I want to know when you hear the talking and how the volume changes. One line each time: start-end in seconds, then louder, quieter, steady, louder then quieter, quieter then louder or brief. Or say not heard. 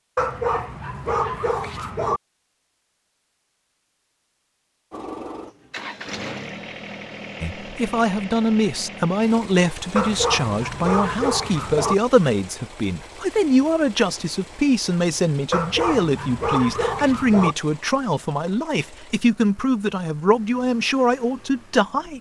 7.4-22.1 steady.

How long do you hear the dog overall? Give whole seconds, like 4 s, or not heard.
6 s.